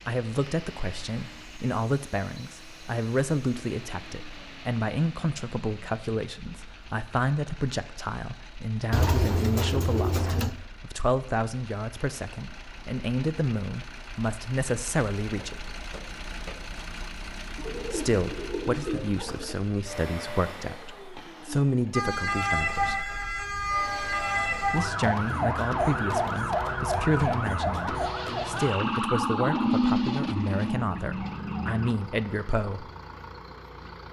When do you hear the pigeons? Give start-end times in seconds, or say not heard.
8.9-10.6, 17.6-19.6.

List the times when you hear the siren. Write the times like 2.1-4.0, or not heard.
21.9-31.9.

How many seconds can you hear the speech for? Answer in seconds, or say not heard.
29 s.